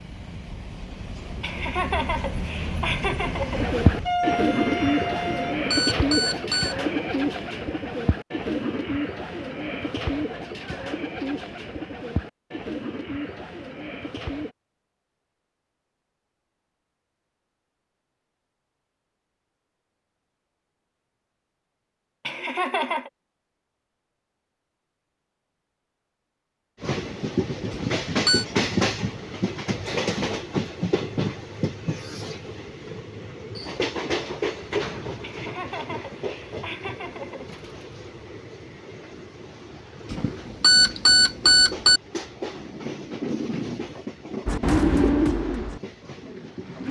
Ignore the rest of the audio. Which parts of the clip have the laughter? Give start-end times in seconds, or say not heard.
1.4-3.8, 22.2-23.1, 35.2-37.5.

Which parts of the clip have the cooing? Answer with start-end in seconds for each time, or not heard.
3.5-14.6, 44.5-46.8.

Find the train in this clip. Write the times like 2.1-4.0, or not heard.
0.0-5.7, 26.8-46.8.